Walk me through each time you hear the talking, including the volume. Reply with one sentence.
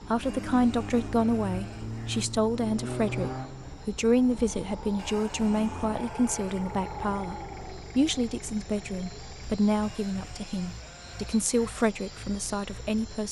The talking can be heard from 0.0 to 13.2 s, at a steady volume.